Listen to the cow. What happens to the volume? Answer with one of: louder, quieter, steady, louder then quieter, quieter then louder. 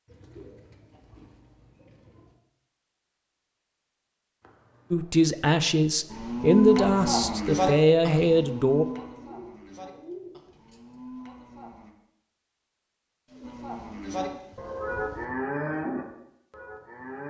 quieter then louder.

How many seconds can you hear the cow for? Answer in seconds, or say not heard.
10 s.